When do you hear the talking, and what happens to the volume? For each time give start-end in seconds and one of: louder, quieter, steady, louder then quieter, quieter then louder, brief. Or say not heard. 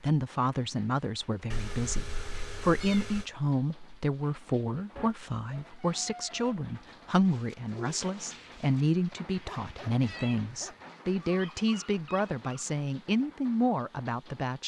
0.0-14.6 steady.